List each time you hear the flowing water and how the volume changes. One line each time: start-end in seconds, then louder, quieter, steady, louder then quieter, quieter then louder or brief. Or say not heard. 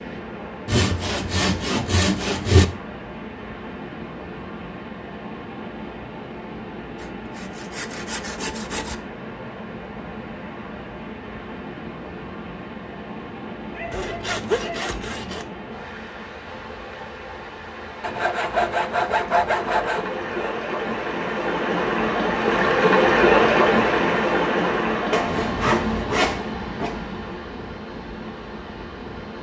0.0-29.3 louder.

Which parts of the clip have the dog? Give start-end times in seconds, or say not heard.
13.7-14.8.